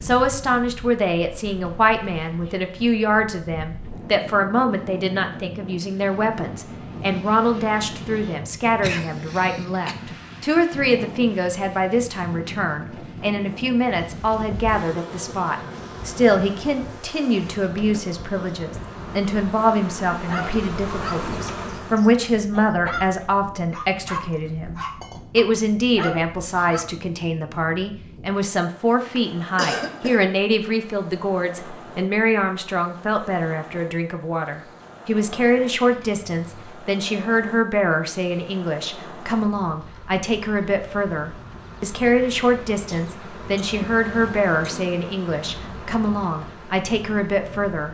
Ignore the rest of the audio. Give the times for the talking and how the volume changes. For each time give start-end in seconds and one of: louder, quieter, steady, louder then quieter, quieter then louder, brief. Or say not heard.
0.0-47.8 steady.